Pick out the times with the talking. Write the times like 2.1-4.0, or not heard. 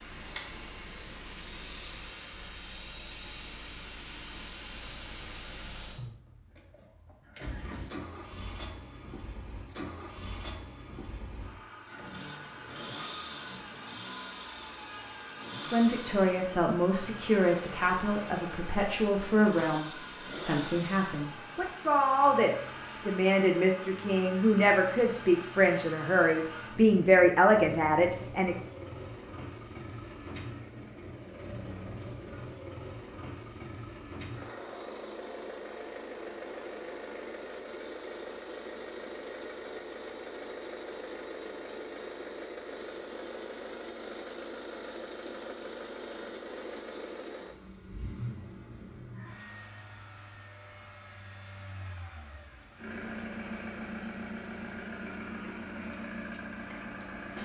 15.6-28.6.